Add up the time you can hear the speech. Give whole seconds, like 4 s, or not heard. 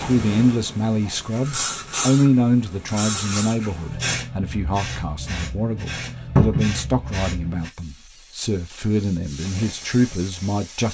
11 s.